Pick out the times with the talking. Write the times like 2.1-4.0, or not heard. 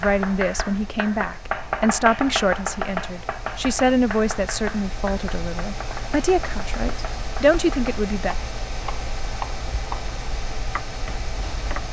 0.0-8.3.